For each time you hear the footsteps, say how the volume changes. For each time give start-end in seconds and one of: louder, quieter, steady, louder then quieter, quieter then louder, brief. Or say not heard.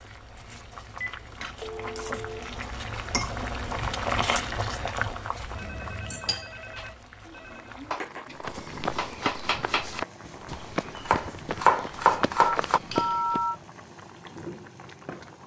8.4-13.4 quieter then louder.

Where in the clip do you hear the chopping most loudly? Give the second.
12 s.